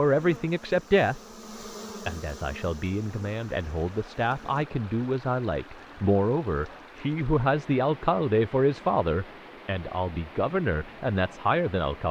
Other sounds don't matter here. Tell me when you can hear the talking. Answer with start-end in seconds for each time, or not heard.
0.0-1.2, 2.0-12.0.